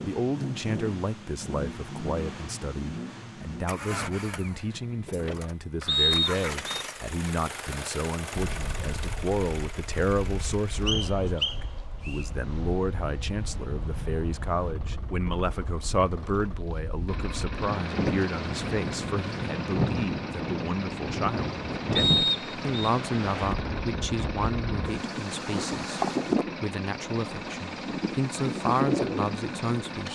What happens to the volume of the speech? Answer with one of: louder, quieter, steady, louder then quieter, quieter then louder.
steady.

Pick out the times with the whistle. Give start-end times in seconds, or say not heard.
5.8-6.8, 10.8-12.2, 21.9-22.6.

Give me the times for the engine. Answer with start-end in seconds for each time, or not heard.
0.0-30.1.